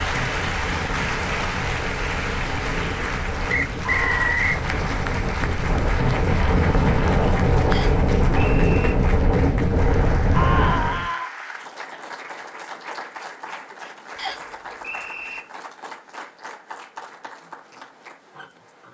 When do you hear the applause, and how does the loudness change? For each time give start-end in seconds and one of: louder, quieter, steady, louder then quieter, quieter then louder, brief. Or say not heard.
0.0-18.9 quieter.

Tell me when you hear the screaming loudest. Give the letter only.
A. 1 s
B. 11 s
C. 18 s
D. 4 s
B.